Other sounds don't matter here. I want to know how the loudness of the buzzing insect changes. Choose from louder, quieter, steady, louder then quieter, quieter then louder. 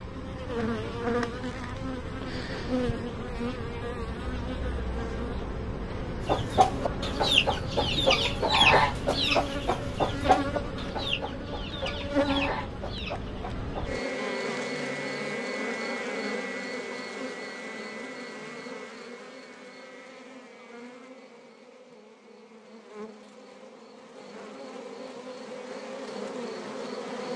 quieter.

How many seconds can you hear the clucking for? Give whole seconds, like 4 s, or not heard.
8 s.